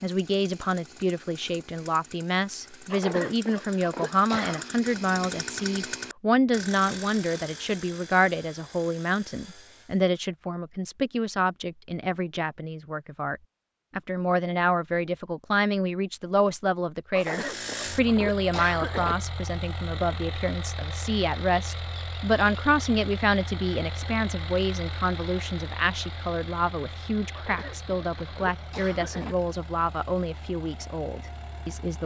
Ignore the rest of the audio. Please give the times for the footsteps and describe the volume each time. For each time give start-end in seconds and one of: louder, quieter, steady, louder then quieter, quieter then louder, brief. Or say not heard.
not heard.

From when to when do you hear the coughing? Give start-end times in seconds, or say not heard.
2.9-4.7, 17.1-19.1, 27.3-29.4.